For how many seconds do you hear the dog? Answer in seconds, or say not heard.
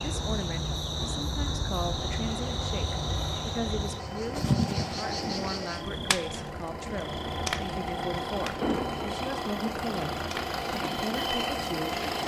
not heard.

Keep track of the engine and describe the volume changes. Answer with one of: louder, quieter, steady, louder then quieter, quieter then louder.
louder.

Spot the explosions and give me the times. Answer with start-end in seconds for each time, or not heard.
8.6-9.1.